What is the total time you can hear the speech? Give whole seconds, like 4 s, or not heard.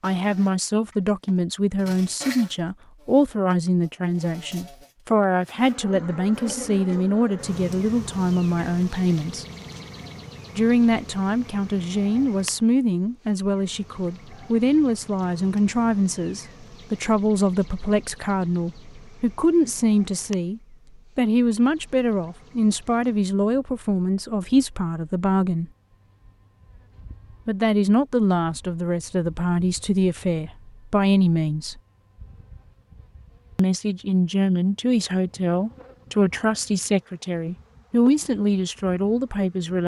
35 s.